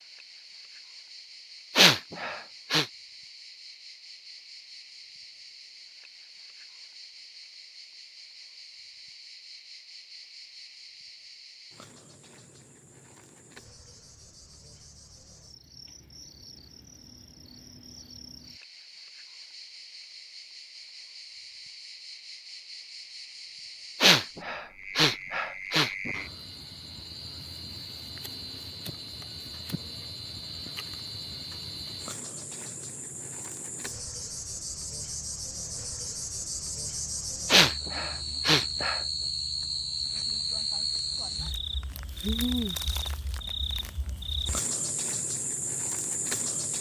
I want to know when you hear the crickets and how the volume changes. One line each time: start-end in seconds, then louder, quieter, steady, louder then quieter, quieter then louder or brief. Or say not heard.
0.0-46.7 louder.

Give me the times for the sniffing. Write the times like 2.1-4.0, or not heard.
1.8-2.9, 24.0-26.1, 37.5-39.0.